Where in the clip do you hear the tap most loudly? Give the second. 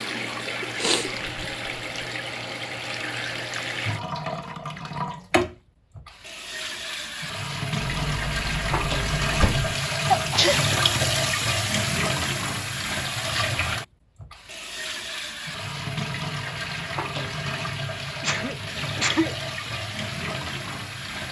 11 s.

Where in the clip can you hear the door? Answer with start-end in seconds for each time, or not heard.
7.8-9.8.